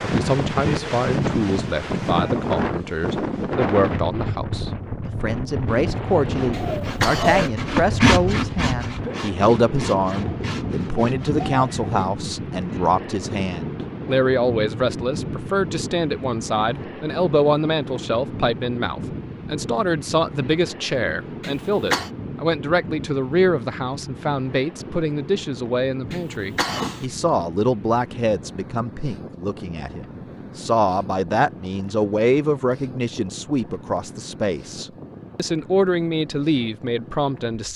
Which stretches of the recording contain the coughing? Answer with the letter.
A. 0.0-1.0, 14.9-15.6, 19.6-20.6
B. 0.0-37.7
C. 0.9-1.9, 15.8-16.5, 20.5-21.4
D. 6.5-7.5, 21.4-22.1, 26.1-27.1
D.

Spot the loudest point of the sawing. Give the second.
8 s.